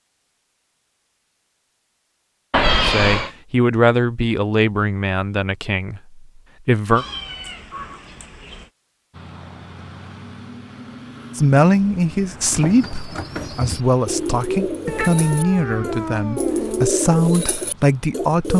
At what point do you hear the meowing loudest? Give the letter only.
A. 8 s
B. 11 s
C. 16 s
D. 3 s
D.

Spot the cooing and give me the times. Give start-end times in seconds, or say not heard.
12.4-18.5.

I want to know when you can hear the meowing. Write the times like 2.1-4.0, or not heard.
2.5-3.3, 7.0-8.7, 14.8-16.9.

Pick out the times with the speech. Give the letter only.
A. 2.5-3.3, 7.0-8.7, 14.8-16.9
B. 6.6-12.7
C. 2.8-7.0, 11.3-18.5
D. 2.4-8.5
C.